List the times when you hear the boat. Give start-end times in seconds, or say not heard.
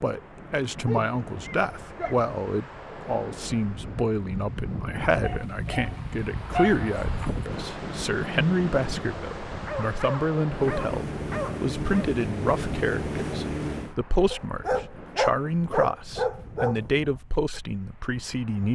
10.4-13.9.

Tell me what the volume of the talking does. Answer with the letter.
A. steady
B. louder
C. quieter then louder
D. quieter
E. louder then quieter
A.